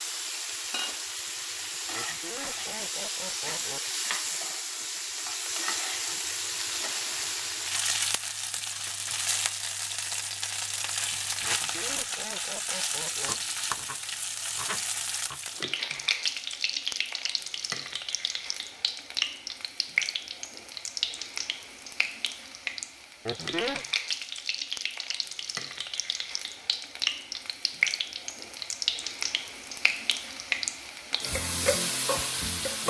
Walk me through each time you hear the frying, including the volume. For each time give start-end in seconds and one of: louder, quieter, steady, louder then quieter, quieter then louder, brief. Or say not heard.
0.0-32.8 steady.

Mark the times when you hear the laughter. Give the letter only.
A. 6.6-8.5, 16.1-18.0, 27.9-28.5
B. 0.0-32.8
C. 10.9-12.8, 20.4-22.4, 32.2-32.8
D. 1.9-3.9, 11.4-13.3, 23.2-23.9
D.